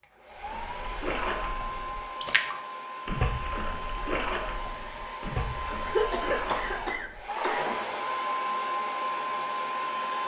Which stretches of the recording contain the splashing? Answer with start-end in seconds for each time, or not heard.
0.3-8.2.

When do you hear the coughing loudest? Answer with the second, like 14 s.
6 s.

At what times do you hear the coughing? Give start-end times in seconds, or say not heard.
5.8-7.7.